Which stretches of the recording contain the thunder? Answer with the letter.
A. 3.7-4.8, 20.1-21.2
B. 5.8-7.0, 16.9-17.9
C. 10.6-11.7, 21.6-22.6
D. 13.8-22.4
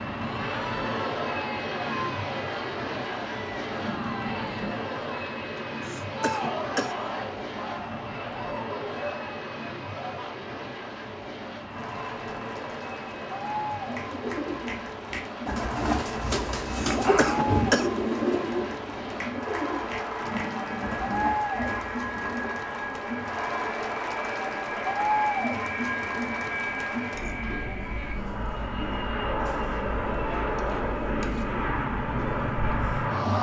A.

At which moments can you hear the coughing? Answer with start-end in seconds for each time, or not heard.
5.8-7.0, 16.9-17.9.